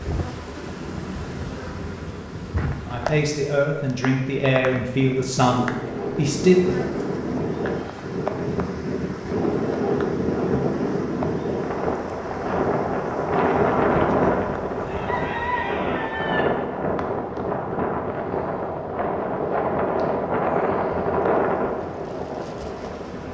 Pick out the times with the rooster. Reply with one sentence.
You can hear the rooster from 14.8 to 16.4 s.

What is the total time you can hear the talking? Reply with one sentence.
The talking can be heard for 4 seconds in total.